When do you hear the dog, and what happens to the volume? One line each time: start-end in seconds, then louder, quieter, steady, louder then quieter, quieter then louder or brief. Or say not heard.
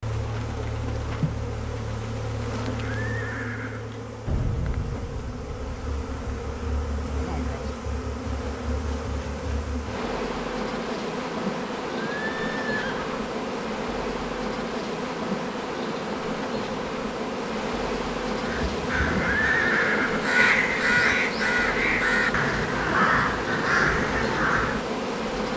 not heard.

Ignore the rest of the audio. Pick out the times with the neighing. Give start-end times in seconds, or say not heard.
2.7-4.0, 11.9-13.1, 19.1-20.2.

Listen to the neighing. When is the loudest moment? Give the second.
20 s.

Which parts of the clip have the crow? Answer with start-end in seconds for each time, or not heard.
18.4-24.9.